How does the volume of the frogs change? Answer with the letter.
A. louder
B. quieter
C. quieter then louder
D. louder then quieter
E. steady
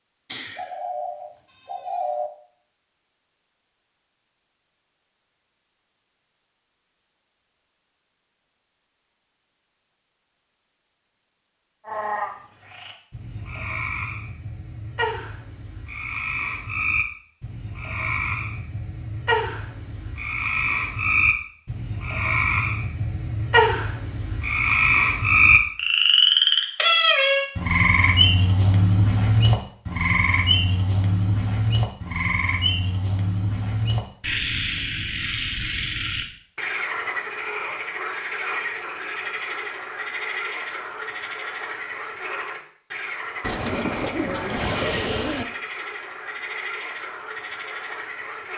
D.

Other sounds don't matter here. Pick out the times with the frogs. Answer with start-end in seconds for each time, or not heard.
11.8-48.5.